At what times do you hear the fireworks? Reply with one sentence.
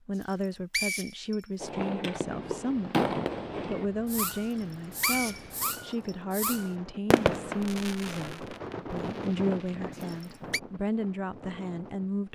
You can hear the fireworks from 1.6 to 10.1 s.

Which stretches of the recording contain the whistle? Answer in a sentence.
You can hear the whistle from 0.2 to 1.4 s, from 4.5 to 6.2 s and from 9.9 to 10.6 s.